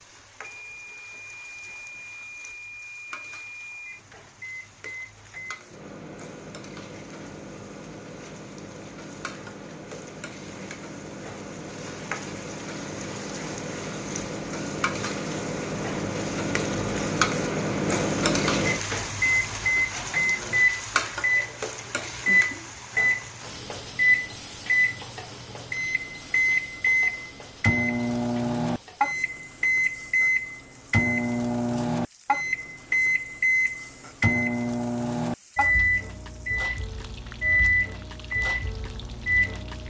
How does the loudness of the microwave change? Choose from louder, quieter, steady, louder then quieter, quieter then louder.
louder.